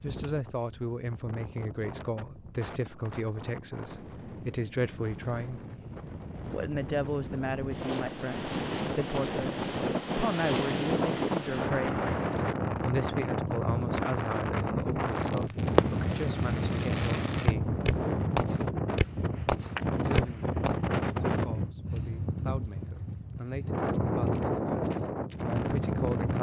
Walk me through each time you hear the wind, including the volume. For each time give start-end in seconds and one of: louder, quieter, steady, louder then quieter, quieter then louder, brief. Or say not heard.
0.0-26.3 louder.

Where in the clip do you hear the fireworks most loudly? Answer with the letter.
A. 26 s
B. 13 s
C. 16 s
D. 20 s
C.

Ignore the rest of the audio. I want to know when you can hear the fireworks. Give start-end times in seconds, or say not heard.
15.2-20.8.